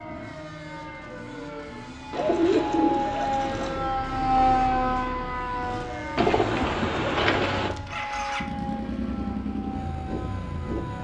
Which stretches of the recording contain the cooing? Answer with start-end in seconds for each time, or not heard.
2.1-3.9, 6.2-7.8.